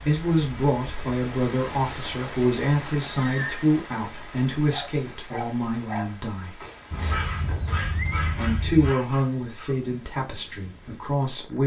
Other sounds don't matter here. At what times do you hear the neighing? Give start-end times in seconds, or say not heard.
3.0-3.7, 6.9-8.9.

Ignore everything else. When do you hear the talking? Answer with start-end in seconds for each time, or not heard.
0.0-6.6, 8.1-11.6.